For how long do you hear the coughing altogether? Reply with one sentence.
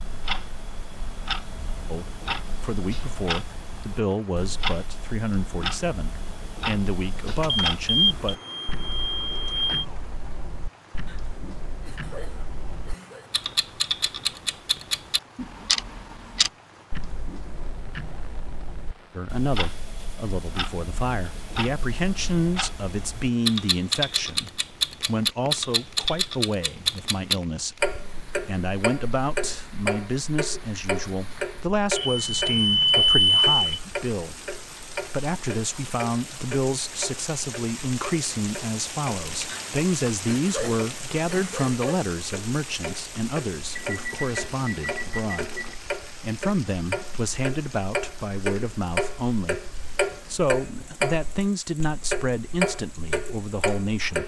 The coughing can be heard for 5 seconds in total.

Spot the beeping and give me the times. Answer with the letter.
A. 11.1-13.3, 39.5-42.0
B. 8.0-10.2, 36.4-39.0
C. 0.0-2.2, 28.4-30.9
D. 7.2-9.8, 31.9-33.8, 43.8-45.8
D.